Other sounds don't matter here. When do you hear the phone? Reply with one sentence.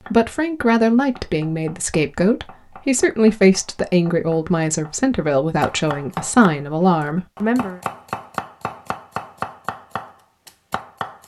The phone can't be heard in this clip.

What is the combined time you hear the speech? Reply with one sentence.
You can hear the speech for 8 seconds altogether.